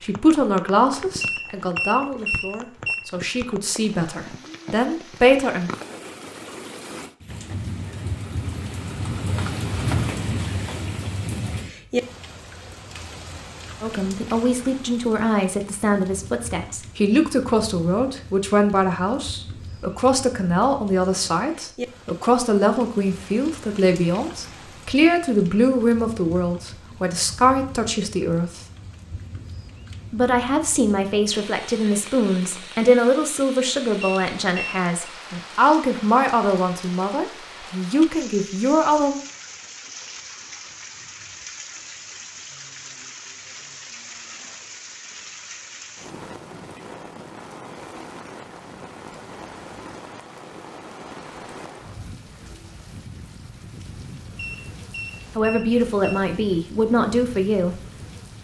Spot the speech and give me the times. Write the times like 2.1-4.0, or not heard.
0.0-5.7, 13.8-28.6, 30.1-39.2, 55.4-57.8.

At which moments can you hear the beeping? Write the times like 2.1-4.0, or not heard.
1.2-3.0, 34.0-35.1, 54.4-56.1.